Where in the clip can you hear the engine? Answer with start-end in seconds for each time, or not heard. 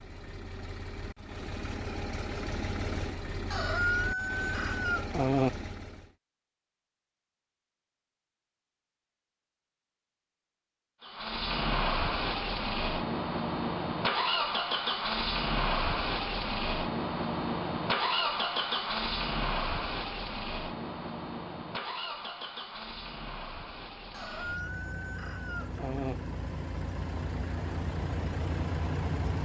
0.0-6.2, 11.0-29.3.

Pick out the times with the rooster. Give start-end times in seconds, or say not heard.
3.5-5.5, 24.1-26.1.